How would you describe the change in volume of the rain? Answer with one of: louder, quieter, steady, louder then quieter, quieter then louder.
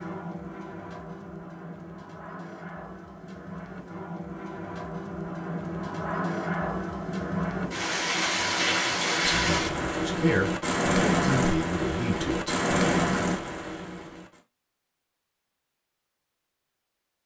louder.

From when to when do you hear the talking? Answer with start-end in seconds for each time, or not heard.
9.2-12.6.